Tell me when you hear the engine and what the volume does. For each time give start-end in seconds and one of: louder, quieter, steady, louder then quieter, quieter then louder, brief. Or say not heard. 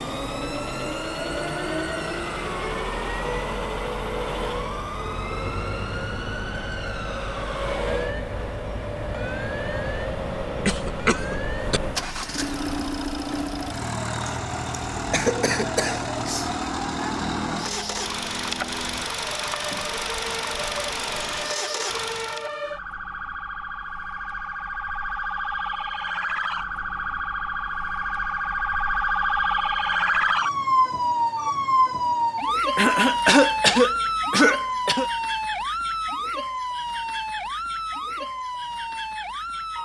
0.0-22.6 steady.